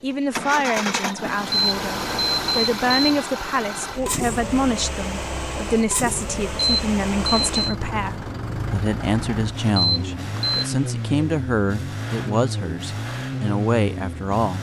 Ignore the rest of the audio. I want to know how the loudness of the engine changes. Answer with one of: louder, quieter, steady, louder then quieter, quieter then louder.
steady.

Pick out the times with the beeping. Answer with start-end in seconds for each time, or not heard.
1.5-3.2, 6.5-7.7, 9.7-10.7.